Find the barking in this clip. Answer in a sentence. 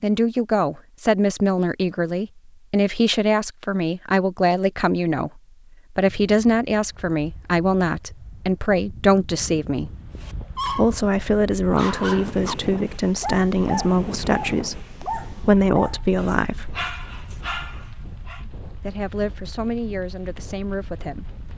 You can hear the barking from 10.2 to 11.0 s and from 11.8 to 18.4 s.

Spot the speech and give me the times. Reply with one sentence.
The speech can be heard from 0.0 to 9.9 s, from 10.7 to 16.8 s and from 18.8 to 21.4 s.